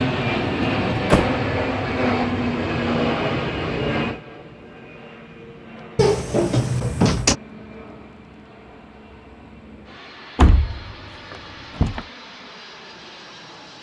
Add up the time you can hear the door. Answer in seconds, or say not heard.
4 s.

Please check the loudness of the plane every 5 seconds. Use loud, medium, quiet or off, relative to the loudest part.
loud, quiet, quiet.